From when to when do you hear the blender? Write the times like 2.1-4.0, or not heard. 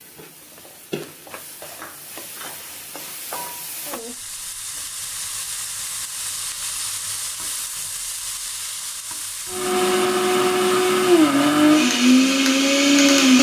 9.4-13.3.